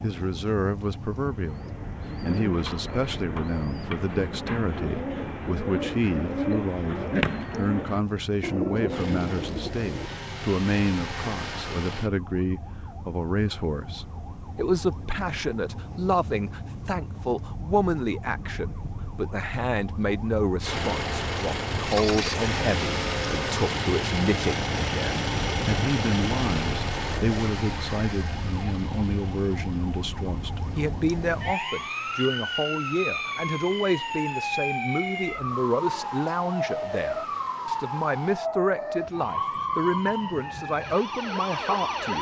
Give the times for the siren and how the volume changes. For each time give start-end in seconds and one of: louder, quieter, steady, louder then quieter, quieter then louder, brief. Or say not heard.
0.0-42.1 louder.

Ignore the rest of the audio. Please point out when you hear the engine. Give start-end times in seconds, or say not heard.
8.9-12.1, 20.6-38.4.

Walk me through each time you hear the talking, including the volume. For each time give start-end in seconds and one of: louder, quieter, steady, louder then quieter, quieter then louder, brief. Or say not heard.
0.0-42.1 steady.